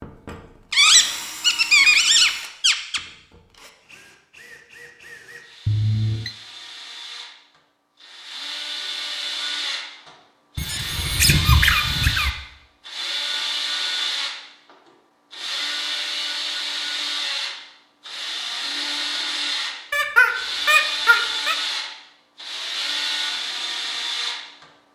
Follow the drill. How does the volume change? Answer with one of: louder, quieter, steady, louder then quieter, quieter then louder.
louder.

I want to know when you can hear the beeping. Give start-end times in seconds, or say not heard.
5.7-6.3.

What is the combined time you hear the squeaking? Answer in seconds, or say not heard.
6 s.